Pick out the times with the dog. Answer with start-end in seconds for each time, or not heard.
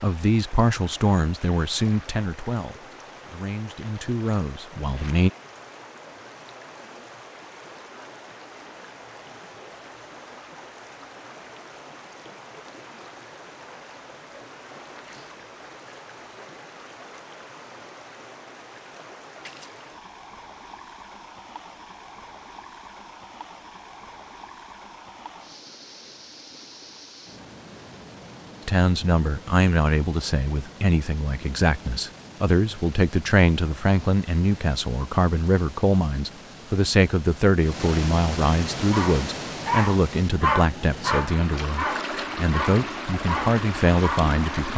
38.9-44.3.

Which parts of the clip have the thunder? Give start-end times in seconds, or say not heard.
not heard.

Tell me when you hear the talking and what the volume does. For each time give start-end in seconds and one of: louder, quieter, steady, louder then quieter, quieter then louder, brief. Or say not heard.
0.0-5.3 quieter then louder
28.6-44.7 steady.